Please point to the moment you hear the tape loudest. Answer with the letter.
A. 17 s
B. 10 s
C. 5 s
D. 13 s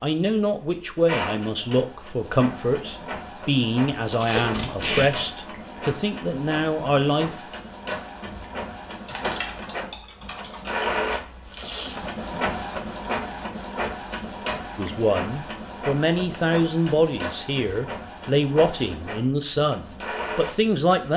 C.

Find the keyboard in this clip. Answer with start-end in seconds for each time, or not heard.
9.1-10.8.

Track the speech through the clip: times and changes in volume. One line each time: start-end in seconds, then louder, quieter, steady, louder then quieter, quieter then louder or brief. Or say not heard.
0.0-7.4 steady
14.8-21.1 steady.